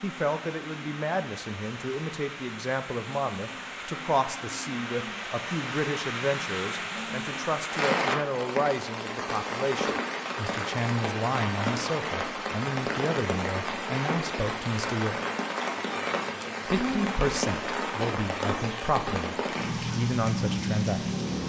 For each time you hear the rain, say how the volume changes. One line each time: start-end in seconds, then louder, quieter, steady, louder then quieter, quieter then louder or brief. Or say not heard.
0.0-21.4 louder.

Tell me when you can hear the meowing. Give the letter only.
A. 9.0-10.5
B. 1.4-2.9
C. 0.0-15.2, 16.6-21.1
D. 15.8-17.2
D.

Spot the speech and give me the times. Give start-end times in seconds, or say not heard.
0.0-15.2, 16.6-21.1.